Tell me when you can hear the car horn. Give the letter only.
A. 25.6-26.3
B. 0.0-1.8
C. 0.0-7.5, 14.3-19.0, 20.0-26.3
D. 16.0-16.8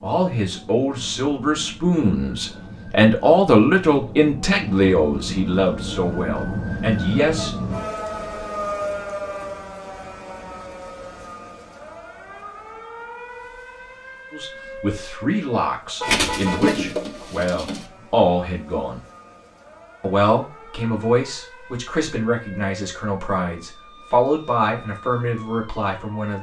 D.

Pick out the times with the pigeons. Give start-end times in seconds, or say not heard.
16.1-17.9.